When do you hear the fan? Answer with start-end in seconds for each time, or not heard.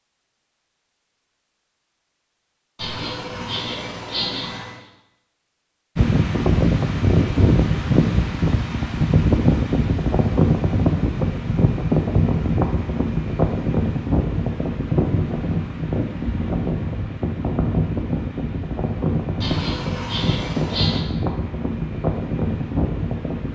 6.0-23.5.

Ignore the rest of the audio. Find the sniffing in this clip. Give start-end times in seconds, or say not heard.
2.8-4.8, 19.4-21.0.